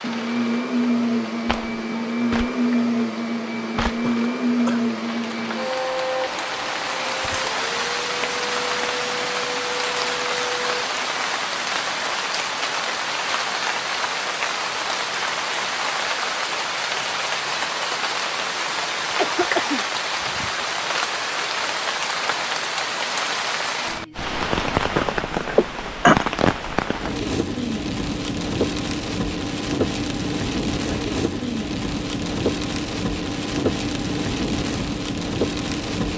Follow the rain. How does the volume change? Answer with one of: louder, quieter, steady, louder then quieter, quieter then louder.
louder.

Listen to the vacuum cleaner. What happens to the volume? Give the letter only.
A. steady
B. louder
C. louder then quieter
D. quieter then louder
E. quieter
E.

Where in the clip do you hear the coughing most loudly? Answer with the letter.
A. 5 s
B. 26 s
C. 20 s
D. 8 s
B.